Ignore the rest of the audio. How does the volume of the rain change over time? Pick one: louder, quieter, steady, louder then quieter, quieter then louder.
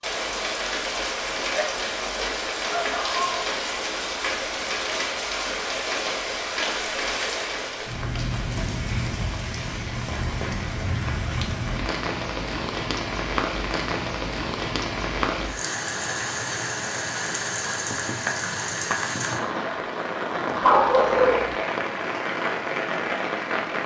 steady.